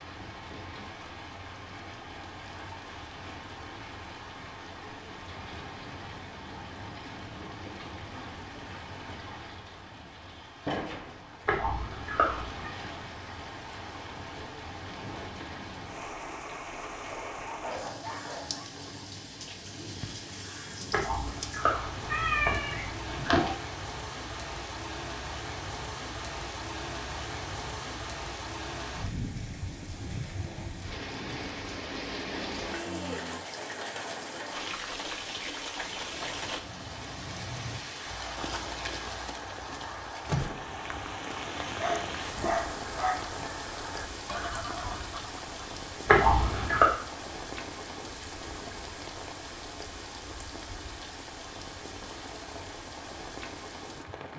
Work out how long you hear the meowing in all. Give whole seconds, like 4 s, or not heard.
5 s.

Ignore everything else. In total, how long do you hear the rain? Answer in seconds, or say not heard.
54 s.